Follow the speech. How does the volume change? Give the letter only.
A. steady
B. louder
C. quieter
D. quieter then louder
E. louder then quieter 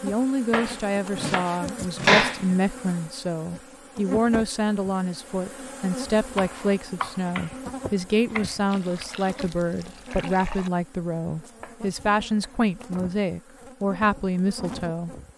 A.